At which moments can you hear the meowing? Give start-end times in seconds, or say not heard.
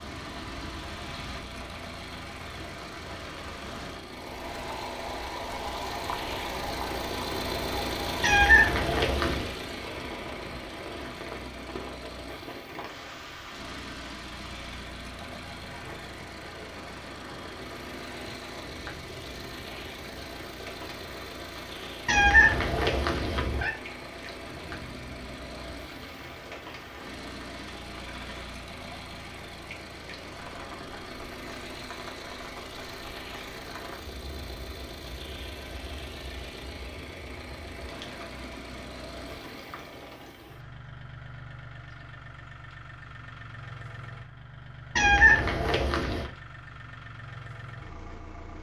8.2-9.5, 22.1-23.7, 45.0-46.3.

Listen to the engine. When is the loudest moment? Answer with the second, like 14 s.
8 s.